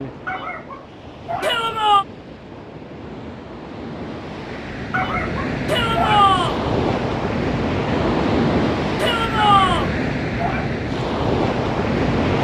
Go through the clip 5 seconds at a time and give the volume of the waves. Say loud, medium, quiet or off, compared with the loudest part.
quiet, loud, loud.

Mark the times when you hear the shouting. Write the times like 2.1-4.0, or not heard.
1.4-2.0, 5.7-6.6, 8.9-9.9.